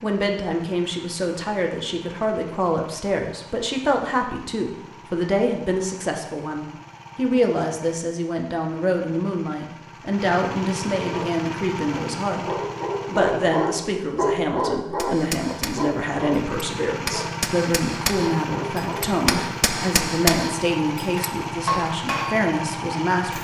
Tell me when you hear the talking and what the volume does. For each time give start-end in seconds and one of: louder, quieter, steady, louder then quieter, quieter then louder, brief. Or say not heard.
0.0-23.3 steady.